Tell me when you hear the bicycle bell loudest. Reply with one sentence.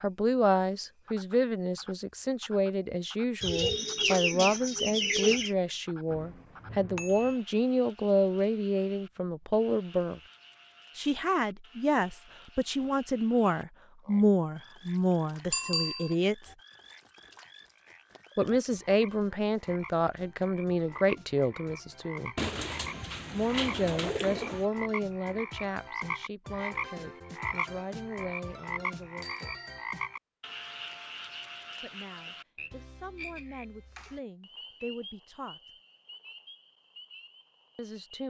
The volume of the bicycle bell peaks at 16 seconds.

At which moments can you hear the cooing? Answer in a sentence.
You can hear the cooing from 3.4 to 5.5 s and from 22.4 to 24.6 s.